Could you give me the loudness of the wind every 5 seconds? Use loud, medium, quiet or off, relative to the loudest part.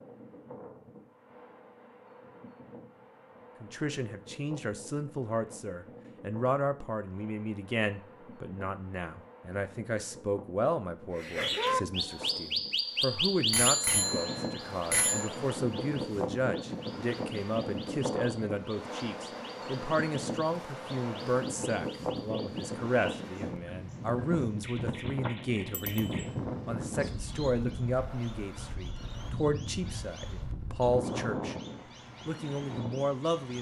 quiet, quiet, medium, loud, loud, loud, loud.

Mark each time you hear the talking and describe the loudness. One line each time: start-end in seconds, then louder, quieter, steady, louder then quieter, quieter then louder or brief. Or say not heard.
3.6-31.6 steady
32.2-33.5 brief.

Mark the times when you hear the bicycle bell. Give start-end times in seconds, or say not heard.
13.5-15.2, 25.7-26.3.